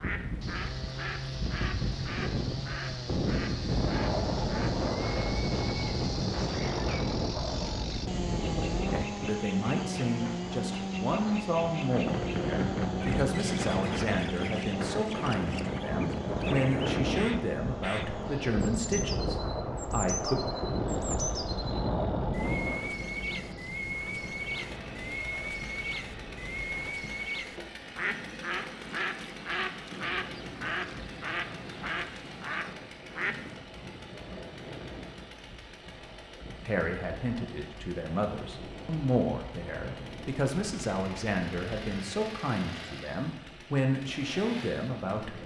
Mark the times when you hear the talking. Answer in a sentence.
The talking can be heard from 8.9 to 20.4 s and from 36.6 to 45.4 s.